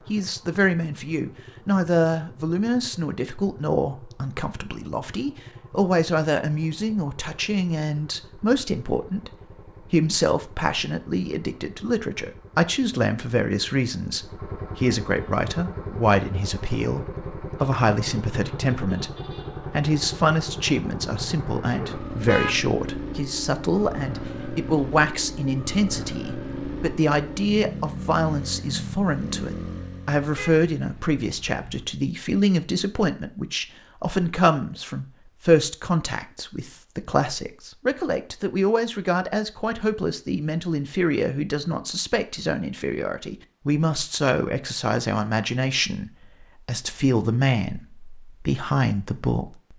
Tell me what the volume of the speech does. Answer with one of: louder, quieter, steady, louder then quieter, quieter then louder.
steady.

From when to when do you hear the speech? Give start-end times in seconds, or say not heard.
0.1-49.7.